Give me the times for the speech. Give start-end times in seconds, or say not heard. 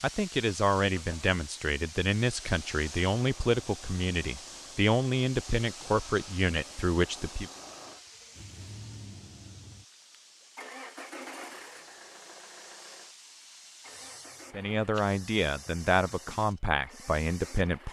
0.0-7.5, 14.5-17.8.